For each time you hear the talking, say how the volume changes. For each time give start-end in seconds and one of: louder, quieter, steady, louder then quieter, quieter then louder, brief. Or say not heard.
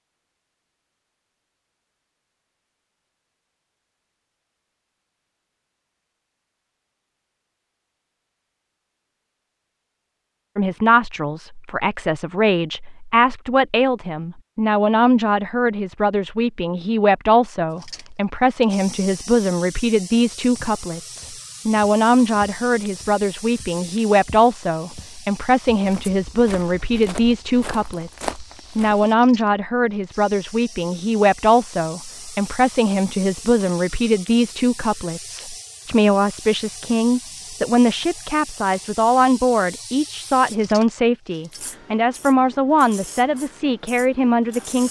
10.6-44.8 steady.